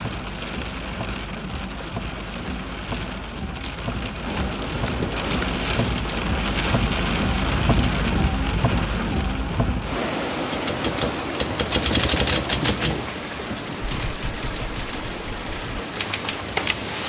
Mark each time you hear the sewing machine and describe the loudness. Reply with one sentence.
You can't hear the sewing machine here.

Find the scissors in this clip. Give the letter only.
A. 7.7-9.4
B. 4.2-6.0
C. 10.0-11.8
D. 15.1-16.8
B.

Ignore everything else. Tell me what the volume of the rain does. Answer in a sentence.
The loudness of the rain goes up, then down.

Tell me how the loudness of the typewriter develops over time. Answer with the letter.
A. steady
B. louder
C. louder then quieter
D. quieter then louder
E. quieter
D.